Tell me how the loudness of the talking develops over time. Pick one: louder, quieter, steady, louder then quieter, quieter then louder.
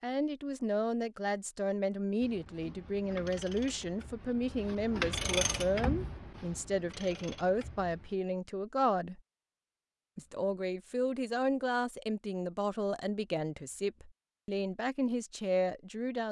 steady.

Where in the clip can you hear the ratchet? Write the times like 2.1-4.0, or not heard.
2.2-8.2.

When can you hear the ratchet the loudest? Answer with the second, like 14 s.
5 s.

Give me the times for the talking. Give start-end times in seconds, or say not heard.
0.0-9.2, 10.2-16.2.